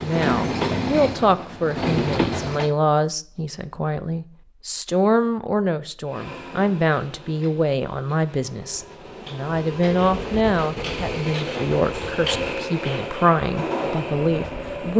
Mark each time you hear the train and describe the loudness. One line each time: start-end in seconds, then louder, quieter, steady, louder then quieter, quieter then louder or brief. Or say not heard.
0.0-2.8 brief
6.0-14.9 louder.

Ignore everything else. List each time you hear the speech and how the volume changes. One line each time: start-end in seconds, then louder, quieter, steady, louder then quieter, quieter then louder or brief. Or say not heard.
0.0-14.9 steady.